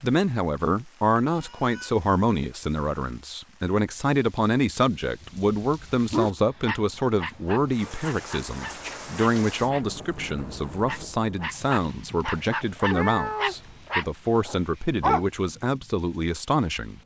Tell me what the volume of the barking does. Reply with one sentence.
The volume of the barking goes down, then up.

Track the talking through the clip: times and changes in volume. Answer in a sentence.
The talking can be heard from 0.0 to 17.0 s, at a steady volume.